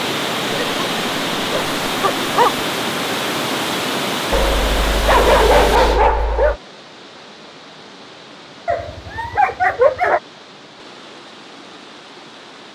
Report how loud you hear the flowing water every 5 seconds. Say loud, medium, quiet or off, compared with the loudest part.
loud, medium, quiet.